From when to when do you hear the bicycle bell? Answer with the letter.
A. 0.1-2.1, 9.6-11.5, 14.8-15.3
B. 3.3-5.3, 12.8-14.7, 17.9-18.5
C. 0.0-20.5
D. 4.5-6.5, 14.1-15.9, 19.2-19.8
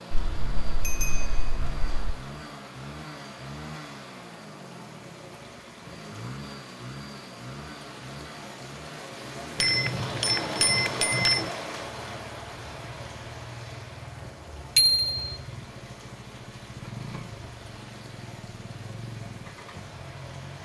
A.